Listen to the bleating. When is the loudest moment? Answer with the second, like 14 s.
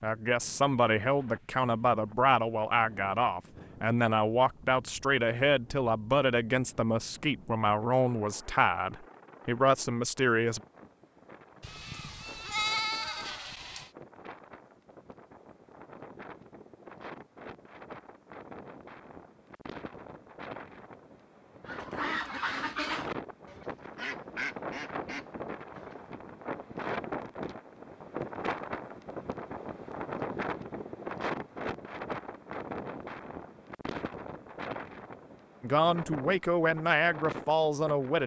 13 s.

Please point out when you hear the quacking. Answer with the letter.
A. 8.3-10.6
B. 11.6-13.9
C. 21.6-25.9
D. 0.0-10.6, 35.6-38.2
C.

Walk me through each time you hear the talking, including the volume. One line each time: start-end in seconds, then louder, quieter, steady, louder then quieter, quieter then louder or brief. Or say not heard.
0.0-10.6 steady
35.6-38.2 brief.